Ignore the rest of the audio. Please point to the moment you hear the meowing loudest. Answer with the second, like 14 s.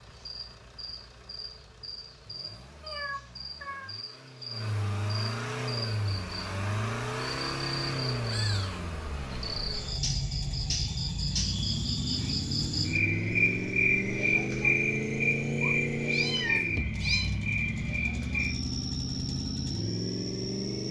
16 s.